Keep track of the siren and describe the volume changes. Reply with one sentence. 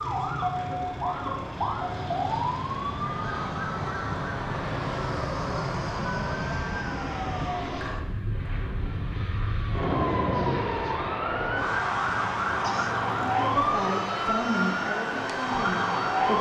The loudness of the siren goes down, then up.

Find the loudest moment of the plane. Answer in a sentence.
The volume of the plane peaks at 6 seconds.